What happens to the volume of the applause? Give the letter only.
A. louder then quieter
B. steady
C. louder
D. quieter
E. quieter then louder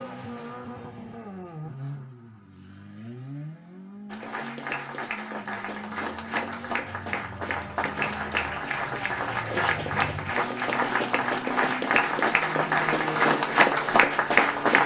C.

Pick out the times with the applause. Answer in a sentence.
You can hear the applause from 4.1 to 14.8 s.